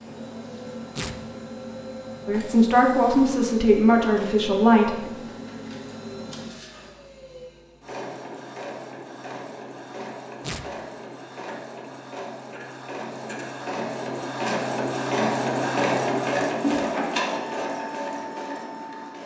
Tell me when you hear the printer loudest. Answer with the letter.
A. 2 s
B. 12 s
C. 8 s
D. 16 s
D.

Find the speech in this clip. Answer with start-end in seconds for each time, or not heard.
2.2-5.1.